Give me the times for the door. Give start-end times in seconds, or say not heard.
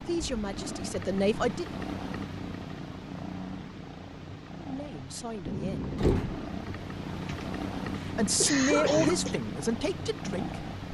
5.5-6.8.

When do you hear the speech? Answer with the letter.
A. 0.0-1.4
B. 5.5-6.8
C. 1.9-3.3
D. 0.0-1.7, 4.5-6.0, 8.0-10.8
D.